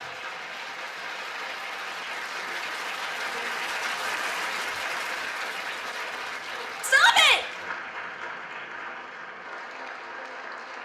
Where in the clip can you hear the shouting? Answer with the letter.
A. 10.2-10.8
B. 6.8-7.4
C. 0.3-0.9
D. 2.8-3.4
B.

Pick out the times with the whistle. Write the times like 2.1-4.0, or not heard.
not heard.